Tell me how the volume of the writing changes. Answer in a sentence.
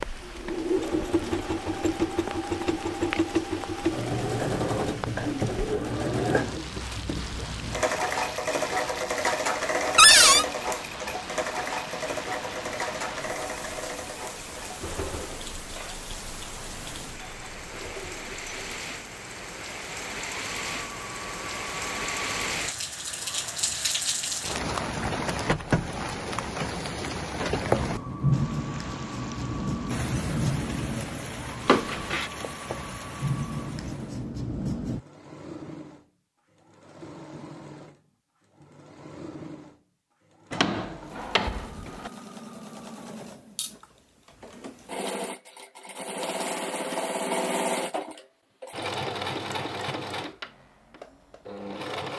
The loudness of the writing goes down, then up.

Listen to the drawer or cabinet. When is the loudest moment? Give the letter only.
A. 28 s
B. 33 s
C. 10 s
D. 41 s
C.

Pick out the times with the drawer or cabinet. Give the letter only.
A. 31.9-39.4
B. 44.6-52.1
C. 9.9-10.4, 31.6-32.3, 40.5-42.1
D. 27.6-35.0
C.